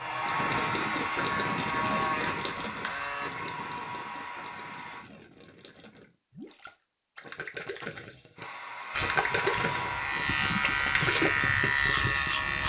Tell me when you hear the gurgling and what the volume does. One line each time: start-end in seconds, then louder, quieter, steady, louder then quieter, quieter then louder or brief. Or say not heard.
0.2-12.3 quieter then louder.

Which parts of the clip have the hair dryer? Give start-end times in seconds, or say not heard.
0.0-5.0, 8.3-12.6.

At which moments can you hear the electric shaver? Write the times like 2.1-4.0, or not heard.
0.0-3.3, 8.9-12.6.